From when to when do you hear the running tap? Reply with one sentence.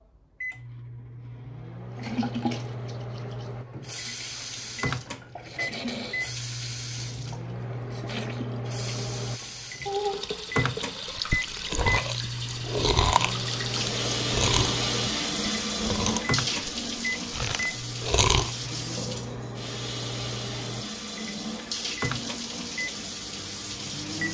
You can hear the running tap from 1.9 to 24.2 s.